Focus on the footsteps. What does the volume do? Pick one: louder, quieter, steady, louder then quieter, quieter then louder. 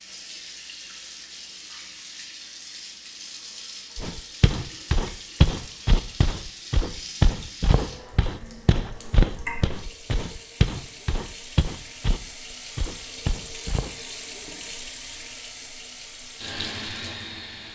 quieter.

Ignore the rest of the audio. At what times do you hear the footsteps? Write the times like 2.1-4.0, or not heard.
4.0-13.9.